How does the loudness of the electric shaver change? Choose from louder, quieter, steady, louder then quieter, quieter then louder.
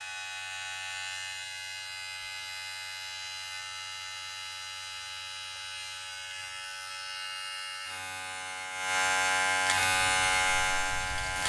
louder.